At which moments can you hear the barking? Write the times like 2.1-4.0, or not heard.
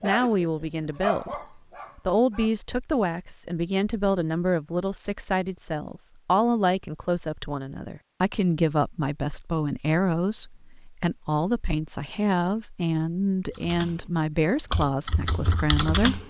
0.0-2.5.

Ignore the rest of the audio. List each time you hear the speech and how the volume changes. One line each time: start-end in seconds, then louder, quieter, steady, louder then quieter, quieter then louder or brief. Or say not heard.
0.0-16.2 steady.